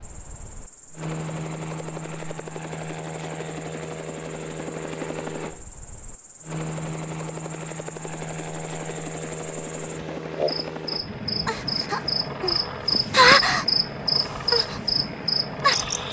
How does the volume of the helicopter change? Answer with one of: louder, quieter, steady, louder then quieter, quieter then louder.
steady.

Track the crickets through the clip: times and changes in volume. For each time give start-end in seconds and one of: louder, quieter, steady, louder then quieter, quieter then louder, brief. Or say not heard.
0.0-16.0 louder.